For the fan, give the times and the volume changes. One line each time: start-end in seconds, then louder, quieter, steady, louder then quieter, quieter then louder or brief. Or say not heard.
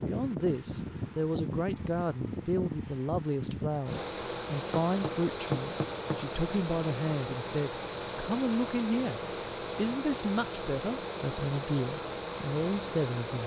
0.0-13.4 steady.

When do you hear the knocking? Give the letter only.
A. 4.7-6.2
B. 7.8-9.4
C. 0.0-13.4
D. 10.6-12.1
A.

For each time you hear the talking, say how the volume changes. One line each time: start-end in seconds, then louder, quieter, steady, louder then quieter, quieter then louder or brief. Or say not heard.
0.0-13.4 steady.